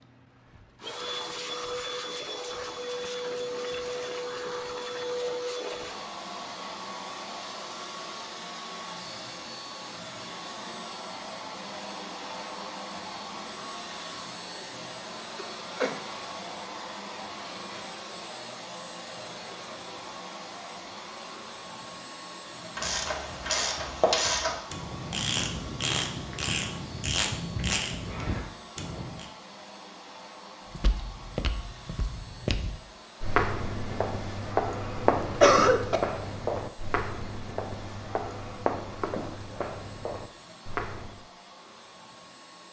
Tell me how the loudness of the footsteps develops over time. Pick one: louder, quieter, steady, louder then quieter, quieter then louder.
louder then quieter.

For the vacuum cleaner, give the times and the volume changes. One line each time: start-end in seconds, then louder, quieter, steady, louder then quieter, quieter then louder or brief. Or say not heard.
0.0-42.6 quieter.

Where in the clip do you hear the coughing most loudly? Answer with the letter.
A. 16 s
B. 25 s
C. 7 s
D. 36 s
D.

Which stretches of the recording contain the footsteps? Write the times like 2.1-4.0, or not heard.
30.7-41.2.